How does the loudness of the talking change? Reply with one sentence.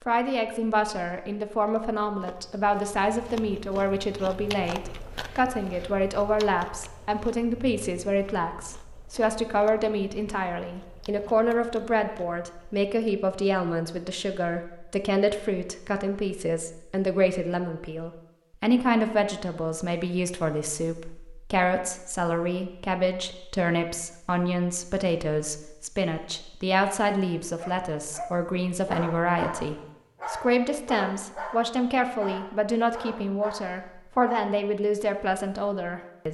The volume of the talking stays about the same.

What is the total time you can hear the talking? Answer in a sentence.
You can hear the talking for 36 seconds altogether.